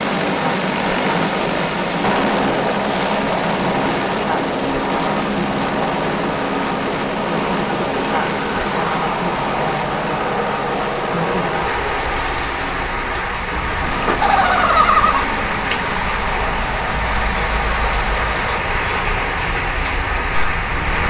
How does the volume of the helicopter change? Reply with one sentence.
The loudness of the helicopter goes down.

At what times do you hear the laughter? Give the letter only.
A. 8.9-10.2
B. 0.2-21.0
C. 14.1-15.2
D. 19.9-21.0
C.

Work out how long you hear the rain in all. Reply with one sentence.
You can hear the rain for 21 seconds altogether.